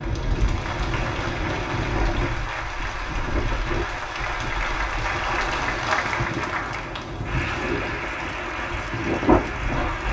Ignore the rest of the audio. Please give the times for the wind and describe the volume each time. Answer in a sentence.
You can hear the wind from 0.0 to 10.0 s, getting quieter then louder.